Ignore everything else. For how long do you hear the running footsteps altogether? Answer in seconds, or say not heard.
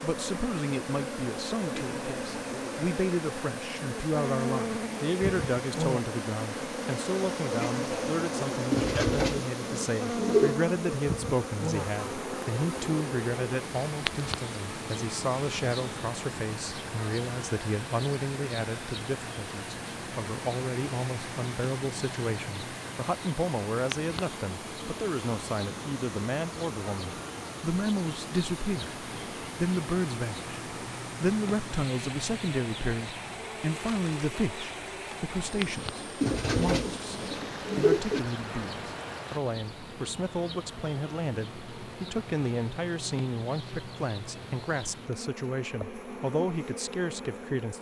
not heard.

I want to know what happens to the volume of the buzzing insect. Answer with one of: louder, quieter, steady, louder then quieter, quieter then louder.
quieter.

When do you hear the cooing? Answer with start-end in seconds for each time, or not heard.
8.7-10.6, 36.2-38.2.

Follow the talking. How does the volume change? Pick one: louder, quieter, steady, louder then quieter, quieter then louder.
steady.